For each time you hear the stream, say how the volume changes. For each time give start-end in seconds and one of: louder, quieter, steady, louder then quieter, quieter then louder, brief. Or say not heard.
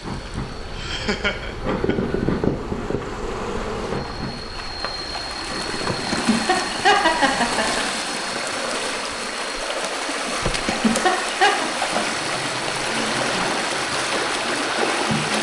0.0-15.3 louder.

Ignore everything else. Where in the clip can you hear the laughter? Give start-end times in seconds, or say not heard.
0.8-1.9, 5.8-7.8, 10.4-11.7.